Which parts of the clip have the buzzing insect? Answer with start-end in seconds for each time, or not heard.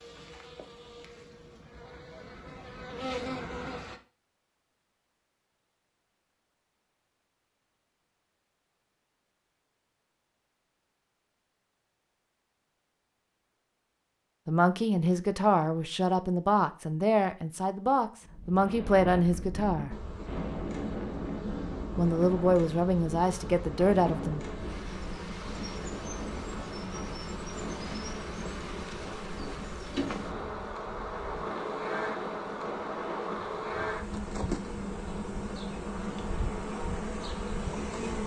0.0-4.0, 19.9-38.2.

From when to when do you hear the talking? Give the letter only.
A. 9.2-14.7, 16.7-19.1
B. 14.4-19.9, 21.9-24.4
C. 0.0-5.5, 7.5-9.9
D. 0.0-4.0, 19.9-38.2
B.